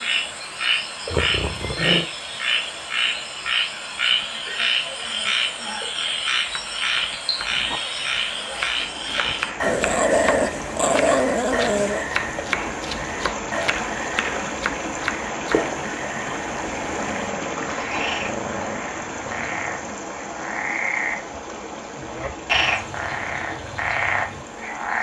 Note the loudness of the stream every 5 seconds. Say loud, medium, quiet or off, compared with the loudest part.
medium, medium, loud, loud, medium.